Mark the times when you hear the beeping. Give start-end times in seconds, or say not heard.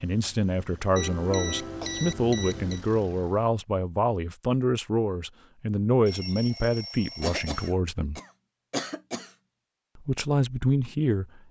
0.9-2.8, 6.0-7.8.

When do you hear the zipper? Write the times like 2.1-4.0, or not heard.
not heard.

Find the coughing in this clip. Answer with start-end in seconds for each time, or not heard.
1.6-2.1, 7.2-9.3.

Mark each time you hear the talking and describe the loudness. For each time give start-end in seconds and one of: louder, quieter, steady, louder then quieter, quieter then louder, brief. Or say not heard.
0.0-8.2 steady
9.9-11.4 brief.